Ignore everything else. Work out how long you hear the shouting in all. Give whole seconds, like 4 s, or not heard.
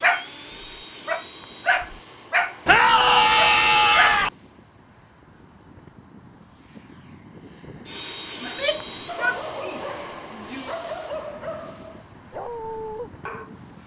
4 s.